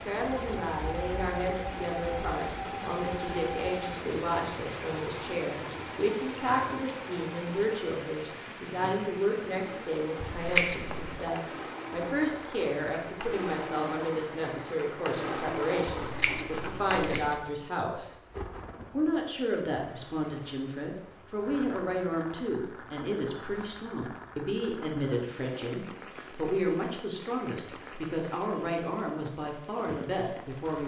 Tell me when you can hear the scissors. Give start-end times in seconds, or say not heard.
10.2-11.3, 15.9-17.4.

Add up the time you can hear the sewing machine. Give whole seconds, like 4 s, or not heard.
17 s.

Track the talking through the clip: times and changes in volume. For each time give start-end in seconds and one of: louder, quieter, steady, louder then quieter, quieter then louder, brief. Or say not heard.
0.1-18.1 steady
18.9-30.8 steady.